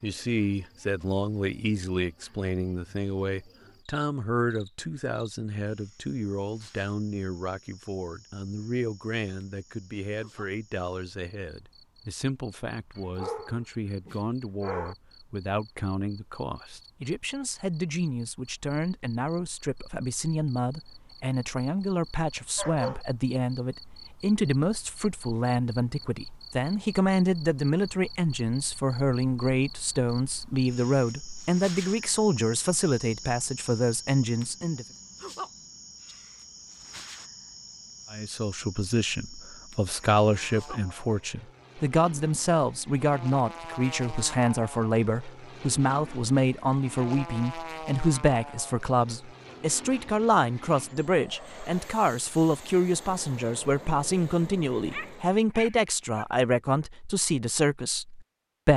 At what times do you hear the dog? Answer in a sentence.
The dog can be heard from 12.9 to 14.9 s, from 22.6 to 23.1 s and from 54.7 to 56.2 s.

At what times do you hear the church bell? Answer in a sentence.
You can't hear the church bell here.